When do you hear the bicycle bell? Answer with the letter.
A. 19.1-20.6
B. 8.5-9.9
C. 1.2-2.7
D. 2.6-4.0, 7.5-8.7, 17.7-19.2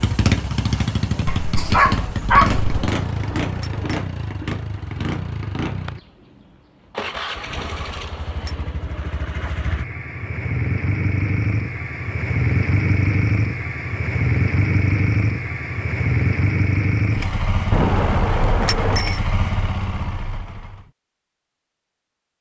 D.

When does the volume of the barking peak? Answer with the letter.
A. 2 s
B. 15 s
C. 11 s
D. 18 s
A.